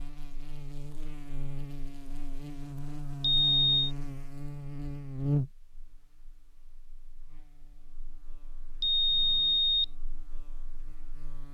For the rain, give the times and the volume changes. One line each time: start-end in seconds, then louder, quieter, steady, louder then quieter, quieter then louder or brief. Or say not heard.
not heard.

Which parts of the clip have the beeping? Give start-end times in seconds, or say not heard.
3.4-3.9, 8.8-9.8.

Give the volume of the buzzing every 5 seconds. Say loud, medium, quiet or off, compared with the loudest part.
loud, loud, quiet.